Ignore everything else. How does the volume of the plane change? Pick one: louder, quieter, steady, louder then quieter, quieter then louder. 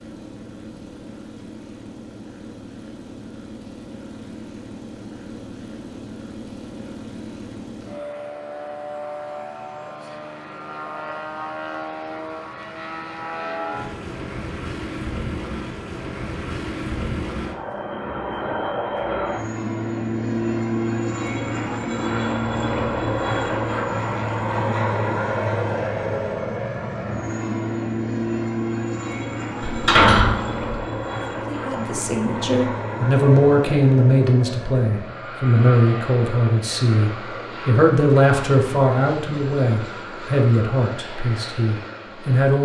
louder then quieter.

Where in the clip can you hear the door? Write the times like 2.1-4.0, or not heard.
29.6-30.8.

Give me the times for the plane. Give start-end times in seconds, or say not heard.
0.0-42.6.